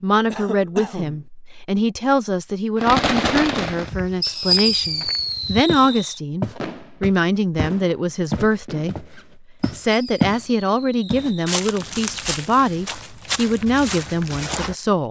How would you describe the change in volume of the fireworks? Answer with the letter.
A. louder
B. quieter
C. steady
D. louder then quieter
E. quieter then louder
B.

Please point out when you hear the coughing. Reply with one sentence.
You can hear the coughing from 0.3 to 1.2 s.